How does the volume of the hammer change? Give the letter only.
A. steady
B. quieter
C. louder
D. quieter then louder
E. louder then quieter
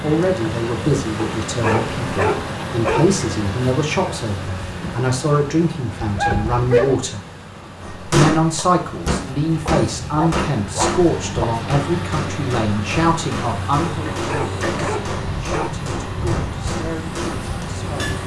B.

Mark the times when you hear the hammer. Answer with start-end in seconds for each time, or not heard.
7.8-18.2.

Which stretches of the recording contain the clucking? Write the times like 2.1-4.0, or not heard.
not heard.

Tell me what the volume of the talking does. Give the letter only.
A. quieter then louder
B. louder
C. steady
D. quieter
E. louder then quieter
D.